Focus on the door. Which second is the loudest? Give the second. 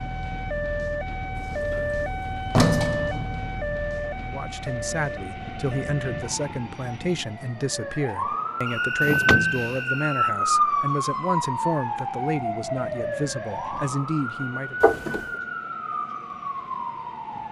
3 s.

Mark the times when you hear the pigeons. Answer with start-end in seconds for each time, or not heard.
not heard.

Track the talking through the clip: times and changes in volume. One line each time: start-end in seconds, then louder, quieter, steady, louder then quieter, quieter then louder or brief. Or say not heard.
4.2-14.8 steady.